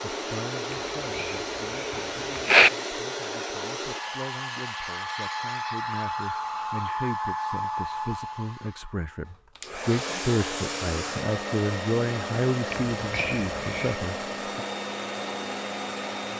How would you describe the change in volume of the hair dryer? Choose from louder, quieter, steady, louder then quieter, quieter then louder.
steady.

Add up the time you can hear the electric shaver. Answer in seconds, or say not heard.
not heard.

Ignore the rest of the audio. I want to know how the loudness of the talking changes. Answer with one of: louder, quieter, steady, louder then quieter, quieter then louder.
louder.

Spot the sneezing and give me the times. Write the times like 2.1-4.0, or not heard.
0.7-2.7, 12.9-14.0.